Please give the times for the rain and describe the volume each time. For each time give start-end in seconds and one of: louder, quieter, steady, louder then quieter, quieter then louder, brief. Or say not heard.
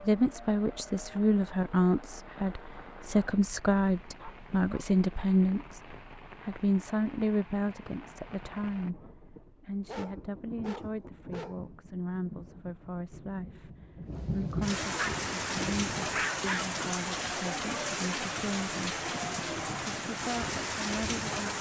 0.0-21.5 louder.